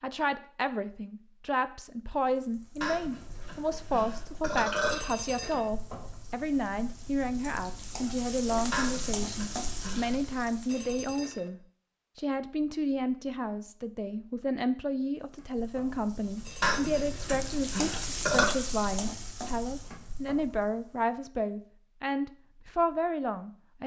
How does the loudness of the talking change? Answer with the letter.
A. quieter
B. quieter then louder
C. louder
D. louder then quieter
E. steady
E.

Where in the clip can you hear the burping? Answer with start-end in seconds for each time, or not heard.
2.8-5.0, 8.7-10.2, 16.6-18.5.